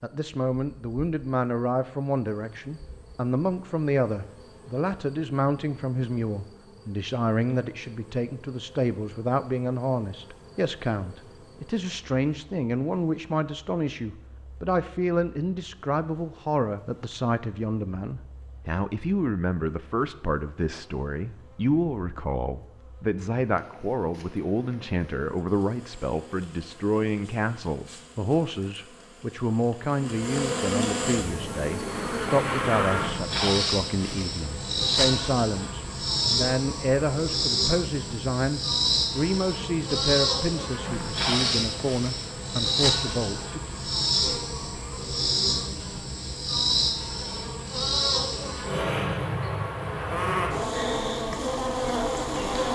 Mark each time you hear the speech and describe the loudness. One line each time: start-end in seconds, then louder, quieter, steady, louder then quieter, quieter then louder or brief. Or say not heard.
0.0-43.6 steady.